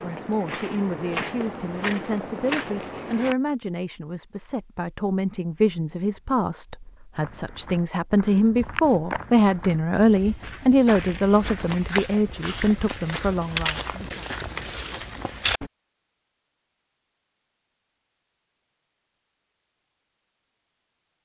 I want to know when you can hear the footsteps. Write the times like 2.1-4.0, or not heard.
0.0-3.4, 7.2-15.7.